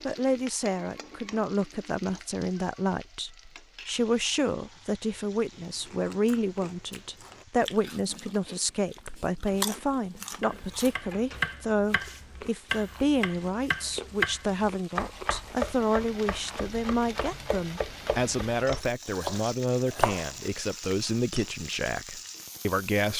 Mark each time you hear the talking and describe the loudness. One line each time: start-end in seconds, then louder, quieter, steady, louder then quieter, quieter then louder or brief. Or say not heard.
0.1-23.1 steady.